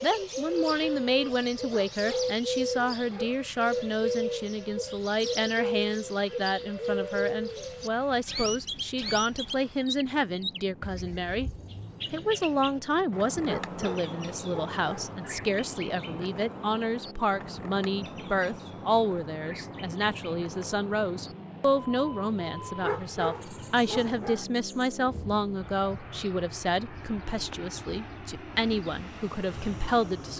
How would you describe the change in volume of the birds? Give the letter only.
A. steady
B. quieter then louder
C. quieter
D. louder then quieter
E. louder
C.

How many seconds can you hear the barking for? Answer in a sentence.
You can hear the barking for 5 seconds altogether.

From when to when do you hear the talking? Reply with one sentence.
The talking can be heard from 0.0 to 11.5 s and from 12.1 to 30.3 s.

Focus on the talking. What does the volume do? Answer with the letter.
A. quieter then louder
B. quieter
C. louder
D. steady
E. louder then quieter
D.